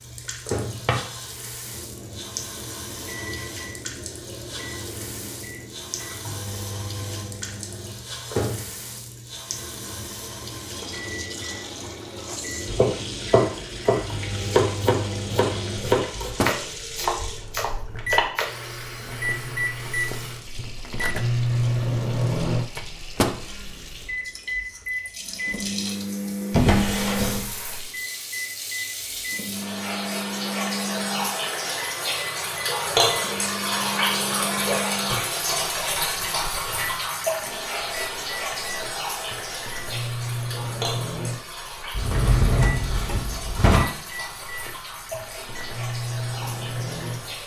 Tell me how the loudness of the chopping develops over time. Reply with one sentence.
The volume of the chopping goes down.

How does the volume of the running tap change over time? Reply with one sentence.
The loudness of the running tap goes up, then down.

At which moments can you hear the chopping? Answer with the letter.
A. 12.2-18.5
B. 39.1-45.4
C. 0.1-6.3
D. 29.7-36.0
A.